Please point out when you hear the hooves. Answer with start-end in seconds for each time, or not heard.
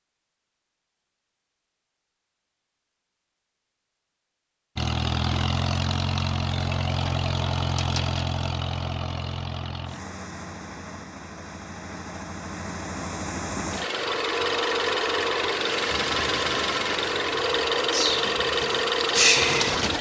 not heard.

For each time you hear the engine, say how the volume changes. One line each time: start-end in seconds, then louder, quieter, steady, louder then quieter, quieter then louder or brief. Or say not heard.
4.8-19.9 quieter then louder.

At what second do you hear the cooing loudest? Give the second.
19 s.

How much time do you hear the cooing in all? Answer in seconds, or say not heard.
4 s.